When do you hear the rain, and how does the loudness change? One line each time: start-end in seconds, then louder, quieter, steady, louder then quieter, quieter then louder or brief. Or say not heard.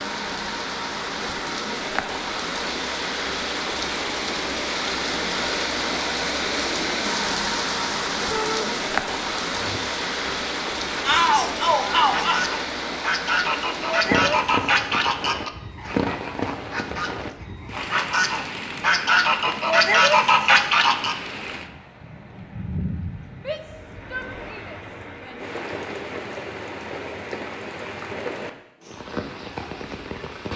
0.0-30.5 quieter.